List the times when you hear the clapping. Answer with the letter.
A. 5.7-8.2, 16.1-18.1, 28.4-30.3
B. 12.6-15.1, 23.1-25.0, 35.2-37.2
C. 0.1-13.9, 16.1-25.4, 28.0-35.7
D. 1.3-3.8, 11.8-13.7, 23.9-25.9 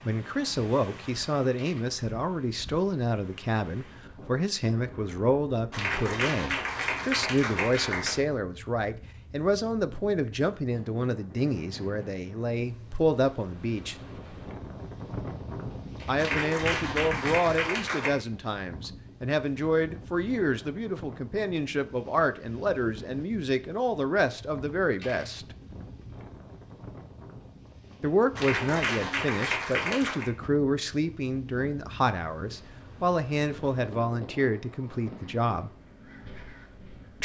A.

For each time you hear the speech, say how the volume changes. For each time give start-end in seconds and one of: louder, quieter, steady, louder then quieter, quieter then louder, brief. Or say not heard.
0.1-13.9 steady
16.1-25.4 steady
28.0-35.7 steady.